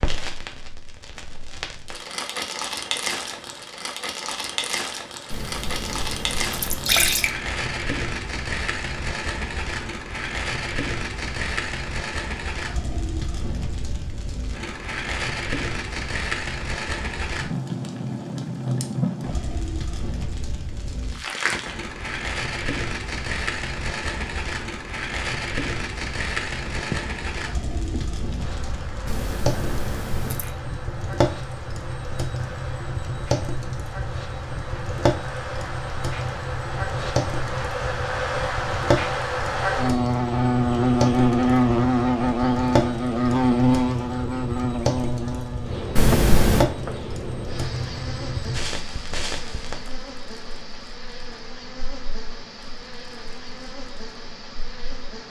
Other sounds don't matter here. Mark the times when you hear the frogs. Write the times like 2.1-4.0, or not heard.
not heard.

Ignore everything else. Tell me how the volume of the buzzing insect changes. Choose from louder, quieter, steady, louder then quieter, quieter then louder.
louder then quieter.